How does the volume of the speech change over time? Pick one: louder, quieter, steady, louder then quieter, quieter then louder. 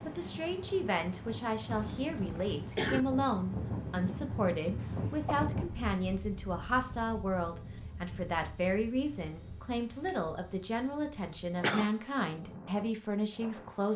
steady.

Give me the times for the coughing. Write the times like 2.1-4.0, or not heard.
1.6-3.0, 4.8-5.5, 11.2-11.9.